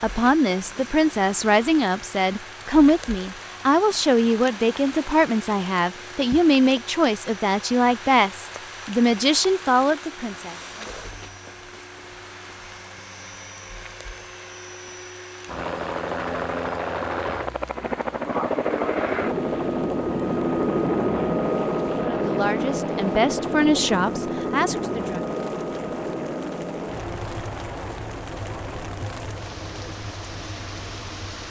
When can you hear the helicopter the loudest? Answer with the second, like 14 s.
21 s.